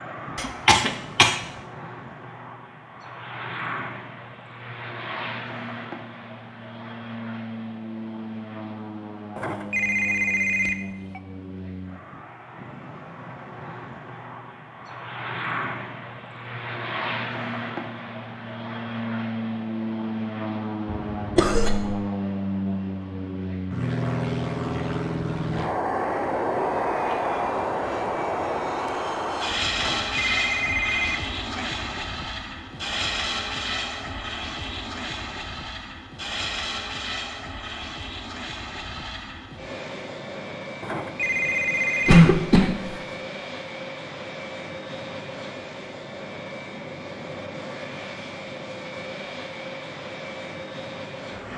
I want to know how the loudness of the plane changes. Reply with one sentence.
The volume of the plane goes up, then down.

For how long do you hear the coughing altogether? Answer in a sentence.
The coughing can be heard for 3 seconds in total.